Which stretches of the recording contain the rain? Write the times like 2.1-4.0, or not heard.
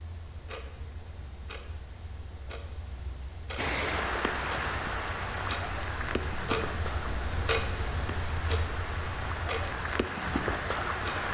3.5-11.2.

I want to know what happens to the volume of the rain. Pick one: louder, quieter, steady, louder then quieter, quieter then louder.
quieter then louder.